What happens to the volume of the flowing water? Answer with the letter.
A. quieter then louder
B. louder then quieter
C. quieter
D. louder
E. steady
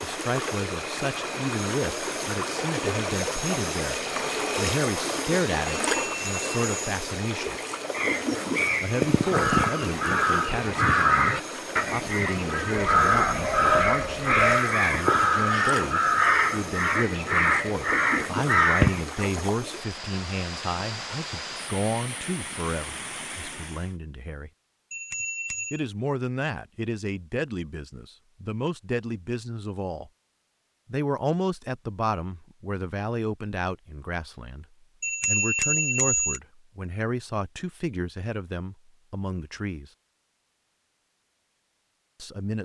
C.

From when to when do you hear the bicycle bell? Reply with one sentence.
The bicycle bell can be heard from 5.7 to 6.8 s, from 24.9 to 25.8 s and from 35.0 to 36.4 s.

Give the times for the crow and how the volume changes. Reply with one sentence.
The crow can be heard from 7.9 to 19.1 s, at a steady volume.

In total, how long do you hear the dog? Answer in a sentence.
The dog can be heard for 2 seconds in total.